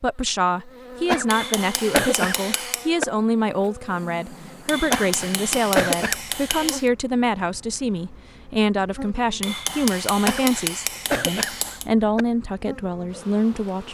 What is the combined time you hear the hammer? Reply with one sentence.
You can hear the hammer for 6 seconds altogether.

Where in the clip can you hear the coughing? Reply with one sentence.
The coughing can be heard from 1.1 to 3.0 s, from 4.8 to 6.3 s and from 10.2 to 12.2 s.